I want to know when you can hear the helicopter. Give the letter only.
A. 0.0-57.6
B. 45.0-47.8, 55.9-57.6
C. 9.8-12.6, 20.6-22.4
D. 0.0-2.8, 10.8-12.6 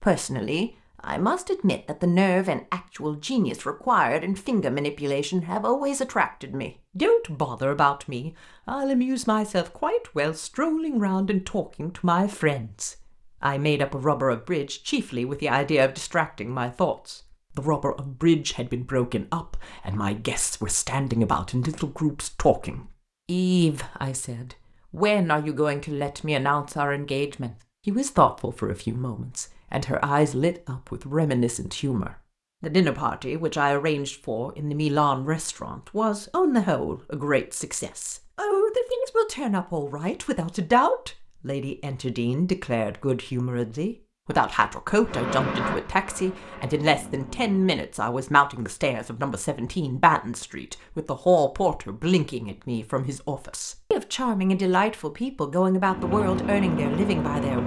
B.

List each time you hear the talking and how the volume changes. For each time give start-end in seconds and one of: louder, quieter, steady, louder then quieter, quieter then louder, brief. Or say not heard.
0.0-57.6 steady.